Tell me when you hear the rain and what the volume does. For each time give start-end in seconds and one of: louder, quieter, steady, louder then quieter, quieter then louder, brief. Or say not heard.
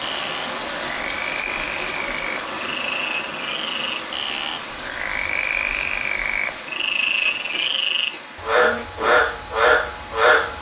0.0-10.5 quieter.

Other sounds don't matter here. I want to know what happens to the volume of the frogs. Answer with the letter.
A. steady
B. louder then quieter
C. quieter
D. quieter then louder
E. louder
E.